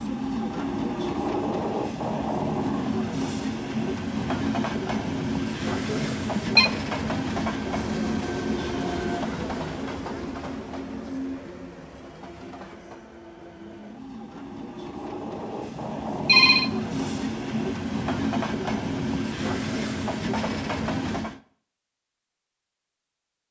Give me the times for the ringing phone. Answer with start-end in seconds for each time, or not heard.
5.8-6.7, 15.6-16.7.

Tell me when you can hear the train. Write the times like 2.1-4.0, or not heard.
0.0-21.4.